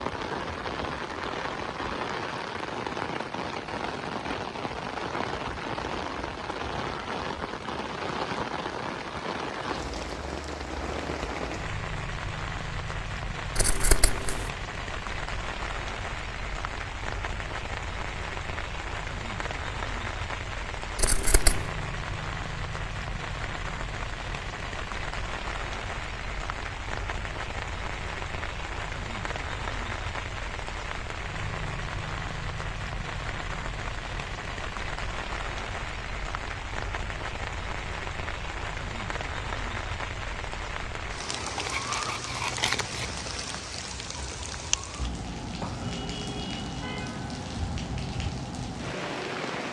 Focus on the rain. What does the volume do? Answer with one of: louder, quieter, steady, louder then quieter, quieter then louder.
steady.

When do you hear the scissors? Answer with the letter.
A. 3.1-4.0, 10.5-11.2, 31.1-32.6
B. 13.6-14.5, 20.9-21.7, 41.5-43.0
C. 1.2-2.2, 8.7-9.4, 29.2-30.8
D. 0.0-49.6
B.